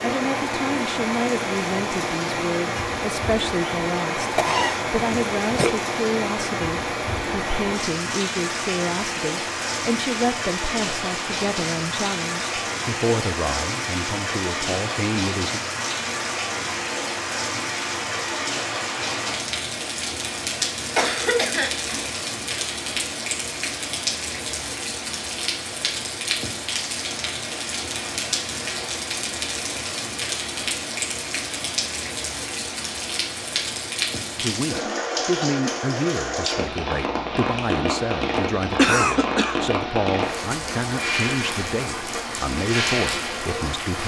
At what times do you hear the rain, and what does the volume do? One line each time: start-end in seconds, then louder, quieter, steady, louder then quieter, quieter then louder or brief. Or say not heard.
0.0-44.0 steady.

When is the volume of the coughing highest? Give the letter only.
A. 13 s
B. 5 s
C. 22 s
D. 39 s
D.